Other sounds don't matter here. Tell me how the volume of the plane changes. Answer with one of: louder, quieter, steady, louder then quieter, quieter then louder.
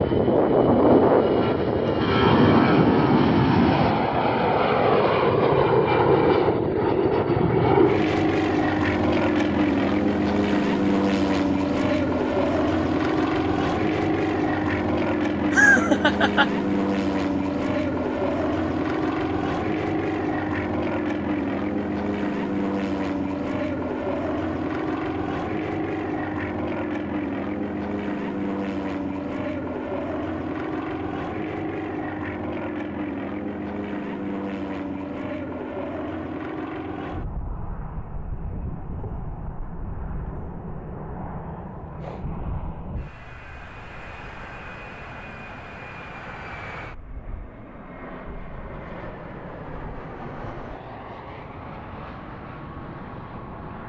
quieter.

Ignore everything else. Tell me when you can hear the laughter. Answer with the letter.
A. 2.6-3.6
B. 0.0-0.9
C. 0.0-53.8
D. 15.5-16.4
D.